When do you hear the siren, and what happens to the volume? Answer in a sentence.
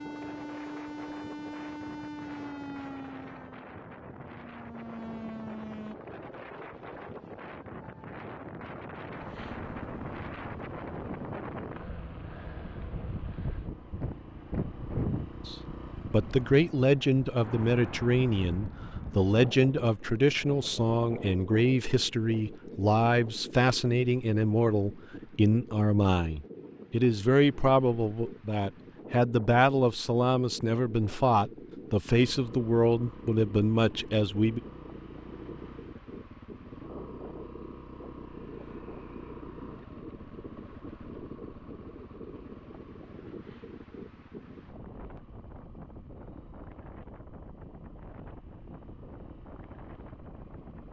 You can hear the siren from 0.0 to 6.0 s, getting quieter then louder.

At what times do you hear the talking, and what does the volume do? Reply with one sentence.
You can hear the talking from 15.4 to 34.6 s, at a steady volume.